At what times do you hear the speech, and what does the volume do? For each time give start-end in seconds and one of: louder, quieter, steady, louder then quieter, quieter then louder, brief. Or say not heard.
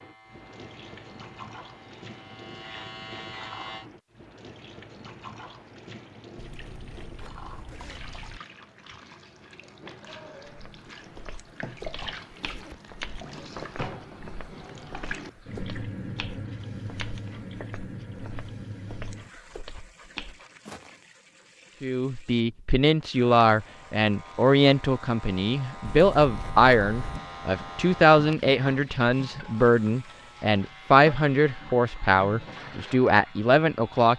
21.8-34.1 steady.